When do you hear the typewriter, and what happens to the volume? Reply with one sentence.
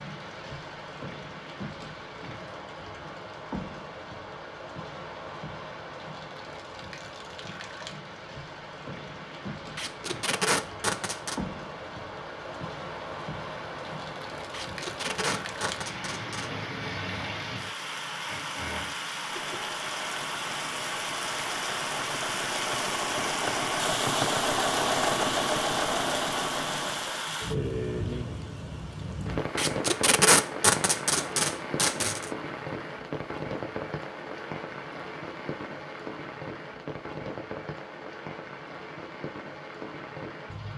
The typewriter can't be heard in this clip.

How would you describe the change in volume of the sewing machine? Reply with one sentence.
The loudness of the sewing machine goes up.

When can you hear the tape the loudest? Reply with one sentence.
The volume of the tape peaks at 30 seconds.